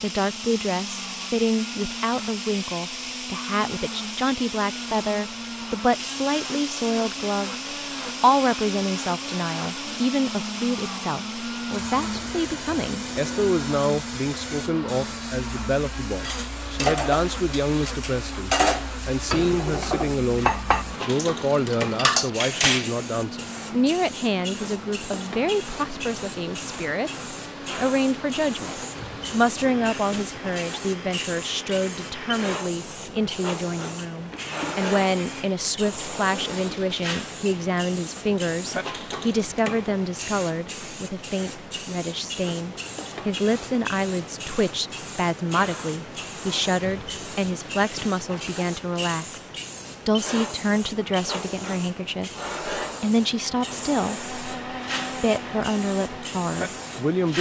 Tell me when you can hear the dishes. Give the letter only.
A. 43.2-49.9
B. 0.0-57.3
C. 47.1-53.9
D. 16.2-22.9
D.